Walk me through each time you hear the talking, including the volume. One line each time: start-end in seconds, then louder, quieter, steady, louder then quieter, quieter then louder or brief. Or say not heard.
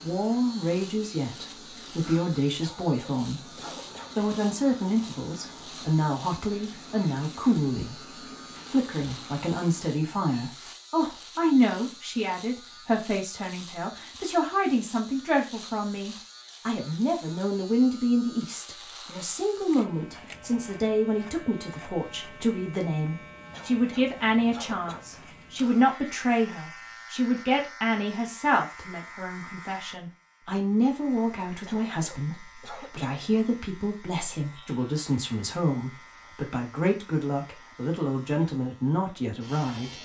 0.0-40.0 steady.